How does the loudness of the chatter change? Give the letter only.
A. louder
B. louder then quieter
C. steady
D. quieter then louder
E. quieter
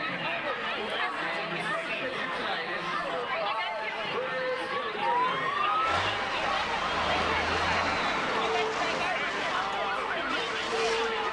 C.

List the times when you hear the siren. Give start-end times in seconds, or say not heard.
5.0-11.2.